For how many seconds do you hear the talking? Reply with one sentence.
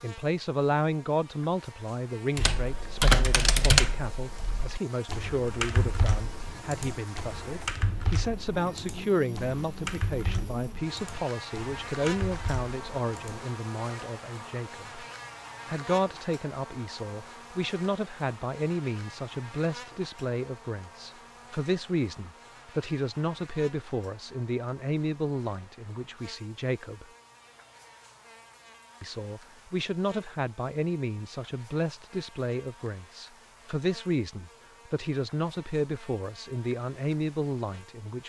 You can hear the talking for 36 seconds altogether.